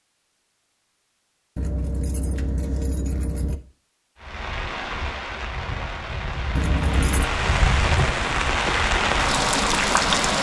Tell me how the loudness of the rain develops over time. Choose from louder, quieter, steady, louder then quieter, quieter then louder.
louder.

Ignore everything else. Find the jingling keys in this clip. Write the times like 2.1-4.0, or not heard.
1.6-3.5, 6.5-7.3.